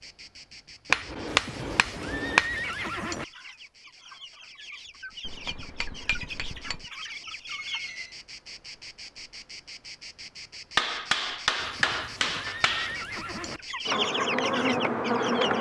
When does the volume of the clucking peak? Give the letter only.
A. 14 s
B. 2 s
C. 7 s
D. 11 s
A.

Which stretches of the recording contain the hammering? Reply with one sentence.
You can hear the hammering from 0.9 to 2.5 s, from 5.2 to 6.8 s and from 10.8 to 12.9 s.